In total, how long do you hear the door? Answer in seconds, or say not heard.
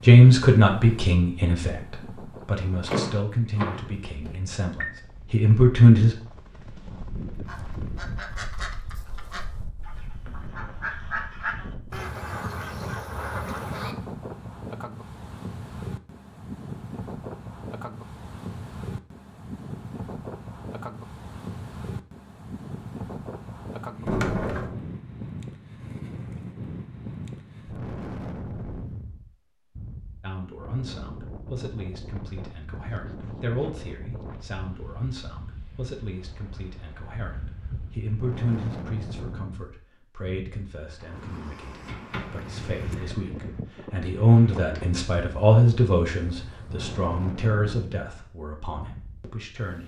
4 s.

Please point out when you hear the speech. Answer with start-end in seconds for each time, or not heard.
0.0-6.2, 30.2-49.8.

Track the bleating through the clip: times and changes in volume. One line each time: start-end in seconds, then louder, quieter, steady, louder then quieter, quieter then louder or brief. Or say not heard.
not heard.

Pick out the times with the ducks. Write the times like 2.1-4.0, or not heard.
7.5-13.9.